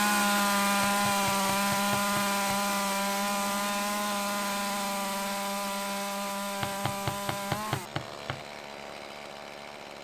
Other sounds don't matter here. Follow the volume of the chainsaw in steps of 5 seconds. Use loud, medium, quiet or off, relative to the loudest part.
loud, medium.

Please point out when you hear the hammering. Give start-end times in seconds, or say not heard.
0.8-2.6, 6.6-8.4.